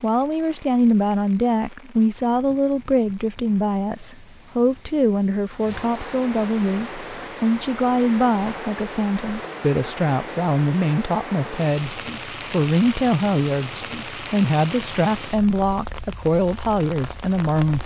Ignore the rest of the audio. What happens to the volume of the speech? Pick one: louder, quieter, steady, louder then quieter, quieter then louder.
steady.